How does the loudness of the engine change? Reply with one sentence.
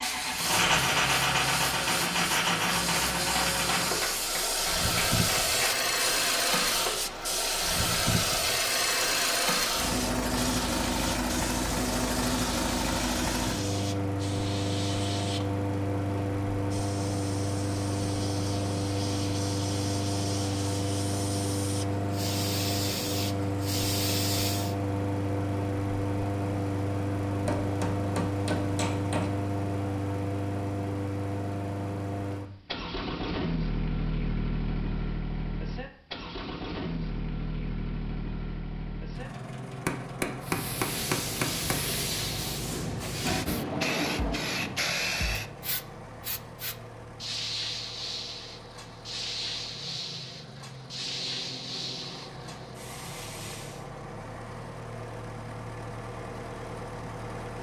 The loudness of the engine goes down.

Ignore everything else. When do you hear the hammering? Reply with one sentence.
The hammering can be heard from 3.1 to 5.8 s, from 27.4 to 29.3 s and from 39.9 to 41.8 s.